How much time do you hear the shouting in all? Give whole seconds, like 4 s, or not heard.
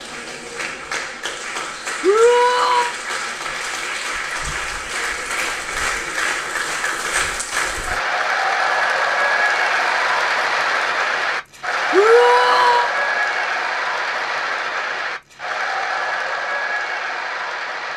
2 s.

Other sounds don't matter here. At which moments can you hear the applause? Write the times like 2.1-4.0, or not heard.
0.0-17.9.